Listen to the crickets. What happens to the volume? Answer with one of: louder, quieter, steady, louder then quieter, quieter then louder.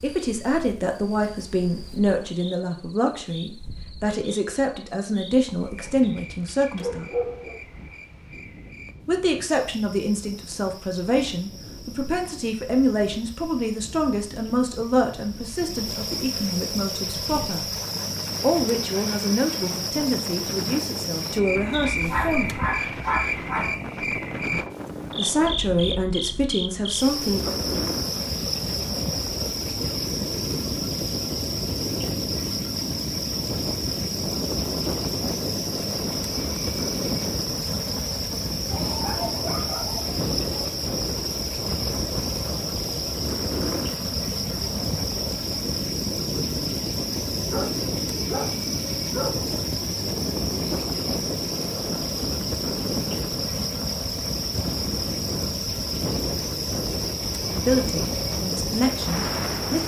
louder.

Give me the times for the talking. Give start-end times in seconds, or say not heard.
0.0-7.1, 9.1-17.6, 18.4-22.6, 25.1-27.6, 57.5-59.8.